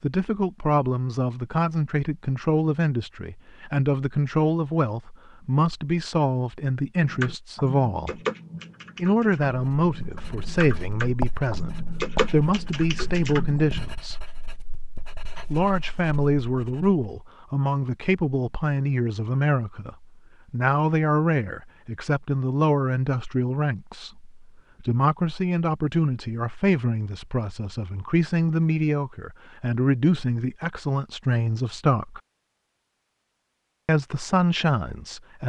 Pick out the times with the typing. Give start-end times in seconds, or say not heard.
7.0-13.9.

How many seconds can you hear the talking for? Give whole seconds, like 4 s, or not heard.
32 s.